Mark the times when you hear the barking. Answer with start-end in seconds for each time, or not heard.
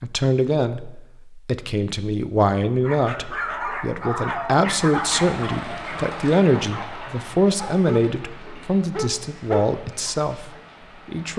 2.8-10.6.